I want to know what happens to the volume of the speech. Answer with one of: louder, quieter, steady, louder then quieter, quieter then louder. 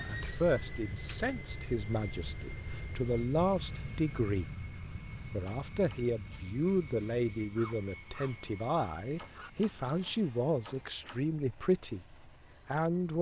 steady.